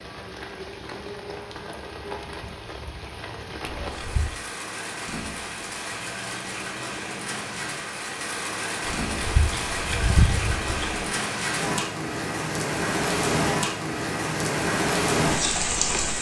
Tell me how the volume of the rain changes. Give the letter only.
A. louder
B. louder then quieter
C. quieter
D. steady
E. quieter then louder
A.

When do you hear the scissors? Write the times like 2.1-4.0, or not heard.
3.8-4.4, 8.8-11.1.